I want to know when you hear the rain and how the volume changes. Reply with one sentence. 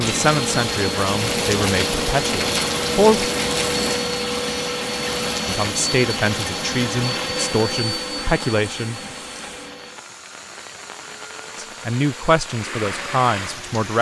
You can hear the rain from 0.0 to 13.9 s, getting quieter then louder.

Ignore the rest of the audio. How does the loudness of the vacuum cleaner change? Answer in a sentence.
The loudness of the vacuum cleaner goes down.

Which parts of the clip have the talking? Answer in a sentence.
The talking can be heard from 0.0 to 3.2 s, from 5.5 to 9.1 s and from 11.6 to 13.9 s.